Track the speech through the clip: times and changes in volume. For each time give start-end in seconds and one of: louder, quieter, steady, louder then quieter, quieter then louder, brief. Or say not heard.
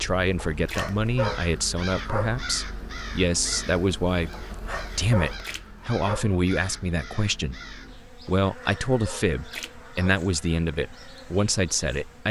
0.0-12.2 steady.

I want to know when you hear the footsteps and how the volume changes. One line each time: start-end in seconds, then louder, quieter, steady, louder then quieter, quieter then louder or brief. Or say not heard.
not heard.